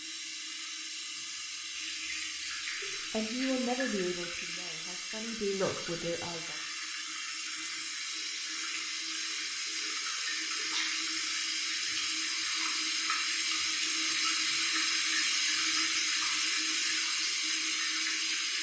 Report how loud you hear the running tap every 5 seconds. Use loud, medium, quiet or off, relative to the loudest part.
medium, medium, loud, loud.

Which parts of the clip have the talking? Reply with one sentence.
The talking can be heard from 3.1 to 6.5 s.